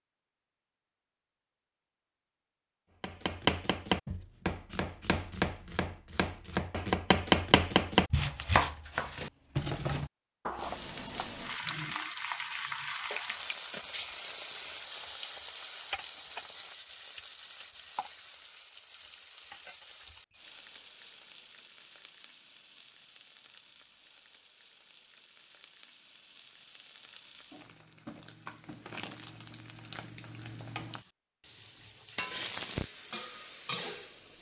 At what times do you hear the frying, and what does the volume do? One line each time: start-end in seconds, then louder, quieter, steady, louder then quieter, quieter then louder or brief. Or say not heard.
10.6-34.3 quieter then louder.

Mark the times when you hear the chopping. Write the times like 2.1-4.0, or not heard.
3.0-11.3.